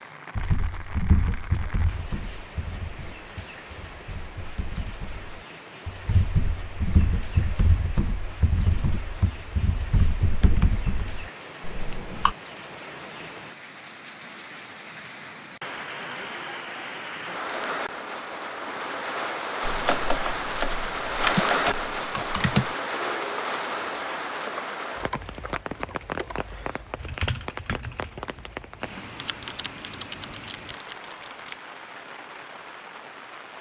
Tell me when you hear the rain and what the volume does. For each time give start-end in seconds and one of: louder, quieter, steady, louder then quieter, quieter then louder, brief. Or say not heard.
0.0-33.5 louder then quieter.